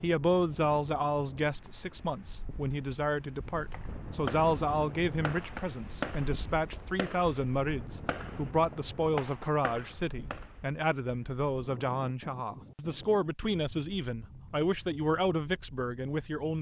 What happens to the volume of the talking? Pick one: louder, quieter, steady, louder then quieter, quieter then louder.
steady.